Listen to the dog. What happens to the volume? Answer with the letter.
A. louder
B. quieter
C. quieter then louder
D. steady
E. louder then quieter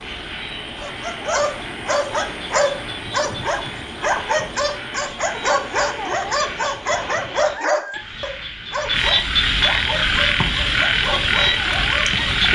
B.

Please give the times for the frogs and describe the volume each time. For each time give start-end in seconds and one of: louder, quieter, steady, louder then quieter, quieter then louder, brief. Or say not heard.
0.0-12.5 louder.